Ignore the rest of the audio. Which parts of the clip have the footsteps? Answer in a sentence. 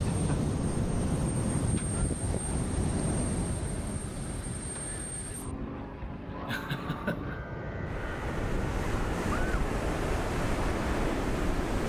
You can't hear the footsteps here.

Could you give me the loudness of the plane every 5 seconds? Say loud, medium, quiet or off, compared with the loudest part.
medium, loud, loud.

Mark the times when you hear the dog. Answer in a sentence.
You can't hear the dog here.